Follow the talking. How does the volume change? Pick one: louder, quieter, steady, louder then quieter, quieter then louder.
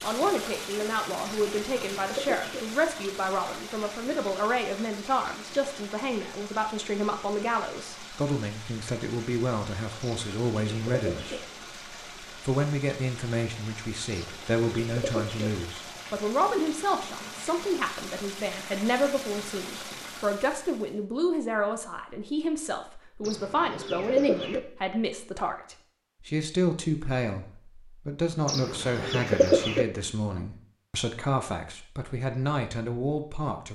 steady.